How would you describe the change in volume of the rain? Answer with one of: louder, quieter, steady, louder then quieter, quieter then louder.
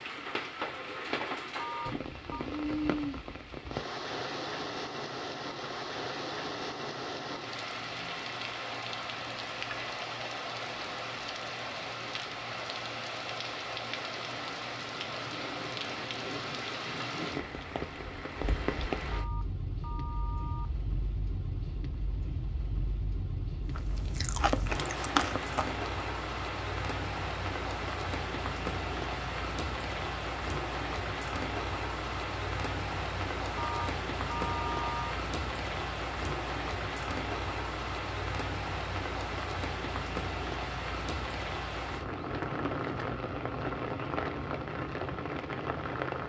steady.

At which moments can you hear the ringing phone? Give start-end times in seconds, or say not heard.
1.6-2.5, 19.1-20.7, 33.5-35.1.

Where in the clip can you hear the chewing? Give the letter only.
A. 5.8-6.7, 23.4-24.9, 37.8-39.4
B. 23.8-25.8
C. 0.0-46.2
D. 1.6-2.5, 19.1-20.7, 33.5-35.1
B.